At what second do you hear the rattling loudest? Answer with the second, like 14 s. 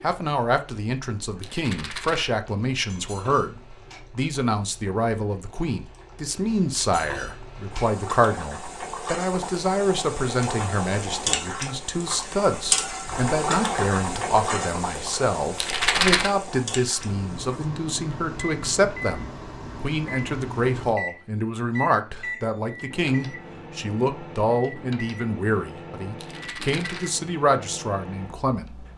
16 s.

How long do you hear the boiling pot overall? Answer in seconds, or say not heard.
18 s.